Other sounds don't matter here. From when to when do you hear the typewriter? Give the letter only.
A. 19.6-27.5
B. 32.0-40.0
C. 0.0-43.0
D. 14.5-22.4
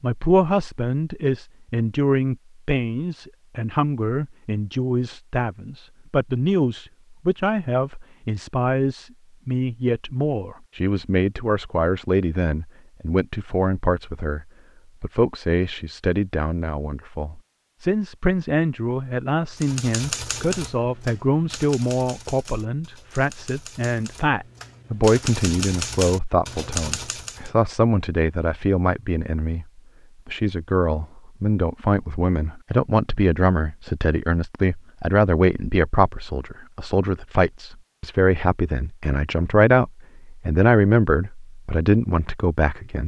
A.